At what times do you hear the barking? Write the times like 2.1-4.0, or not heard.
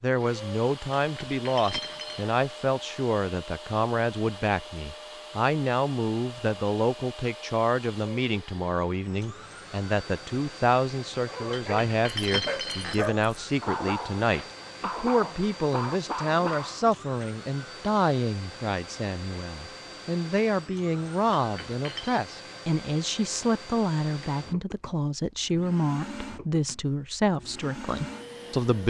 11.2-17.2.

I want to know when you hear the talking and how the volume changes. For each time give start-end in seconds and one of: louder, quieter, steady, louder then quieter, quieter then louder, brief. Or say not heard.
0.0-28.8 steady.